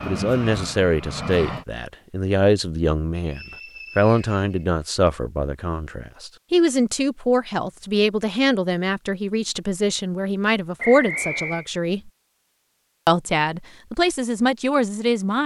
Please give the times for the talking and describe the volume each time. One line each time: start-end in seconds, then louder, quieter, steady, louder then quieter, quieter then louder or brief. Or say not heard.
0.1-12.1 steady
13.1-15.4 brief.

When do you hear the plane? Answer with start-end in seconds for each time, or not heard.
0.0-1.6.